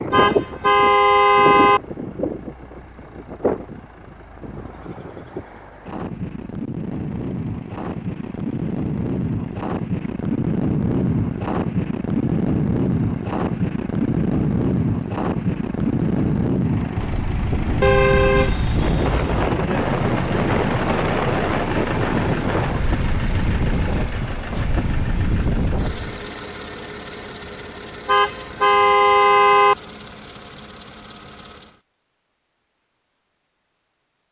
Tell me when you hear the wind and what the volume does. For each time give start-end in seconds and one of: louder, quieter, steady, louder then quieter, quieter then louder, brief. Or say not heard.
0.0-26.2 louder.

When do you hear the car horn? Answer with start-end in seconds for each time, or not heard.
0.1-1.8, 17.8-19.7, 28.1-29.8.